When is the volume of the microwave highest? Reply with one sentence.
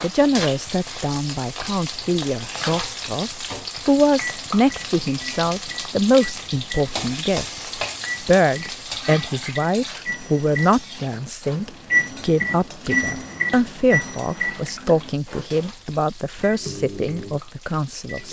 The loudest moment of the microwave is at 12 seconds.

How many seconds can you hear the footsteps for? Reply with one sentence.
The footsteps can't be heard in this clip.